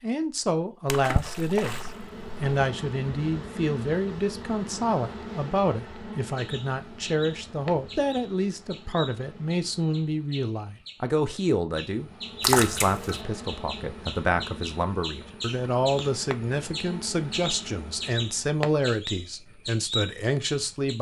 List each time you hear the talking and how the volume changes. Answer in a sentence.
The talking can be heard from 0.0 to 20.9 s, at a steady volume.